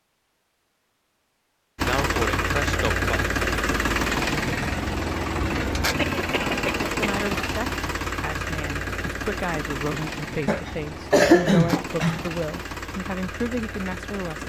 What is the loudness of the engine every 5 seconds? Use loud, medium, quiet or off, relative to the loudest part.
loud, loud, medium.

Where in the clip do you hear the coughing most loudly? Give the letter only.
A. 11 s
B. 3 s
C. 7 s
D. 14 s
A.